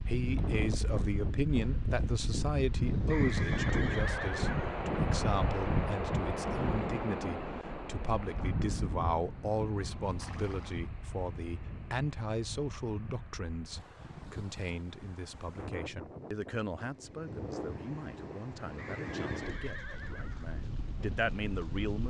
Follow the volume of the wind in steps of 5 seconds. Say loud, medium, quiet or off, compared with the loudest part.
loud, loud, quiet, medium, medium.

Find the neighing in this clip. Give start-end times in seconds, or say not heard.
3.0-4.8, 10.0-10.9, 18.8-20.6.